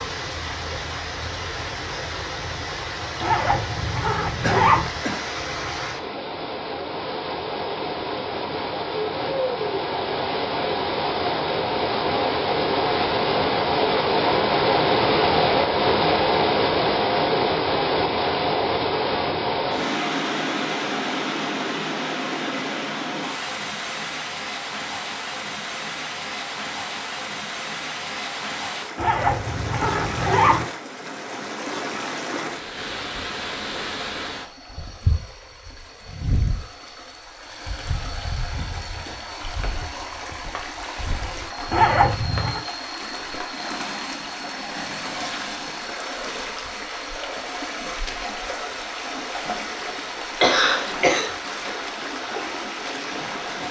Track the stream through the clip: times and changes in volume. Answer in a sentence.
You can hear the stream from 0.0 to 53.6 s, getting louder then quieter.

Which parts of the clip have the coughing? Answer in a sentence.
The coughing can be heard from 4.4 to 5.2 s and from 49.2 to 51.6 s.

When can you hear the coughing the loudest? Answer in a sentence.
The loudest moment of the coughing is at 51 seconds.